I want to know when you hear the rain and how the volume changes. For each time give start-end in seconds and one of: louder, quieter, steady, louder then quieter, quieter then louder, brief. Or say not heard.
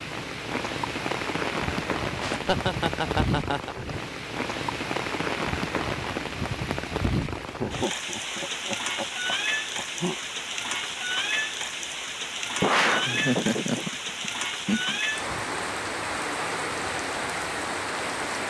0.0-18.4 steady.